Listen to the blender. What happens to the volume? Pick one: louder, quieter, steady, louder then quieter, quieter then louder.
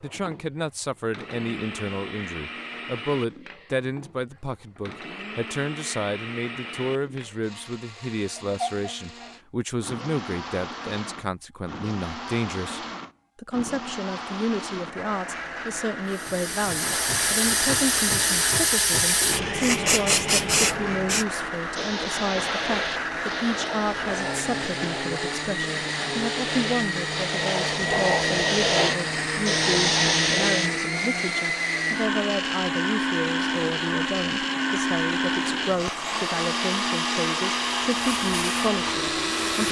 louder.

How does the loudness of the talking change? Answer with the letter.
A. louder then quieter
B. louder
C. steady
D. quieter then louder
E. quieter
C.